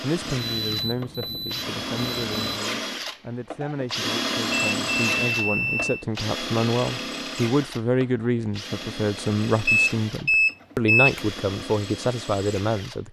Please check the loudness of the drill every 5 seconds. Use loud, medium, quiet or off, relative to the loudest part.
loud, loud, medium.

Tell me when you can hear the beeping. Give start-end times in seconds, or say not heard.
0.3-2.6, 4.5-6.0, 9.7-11.2.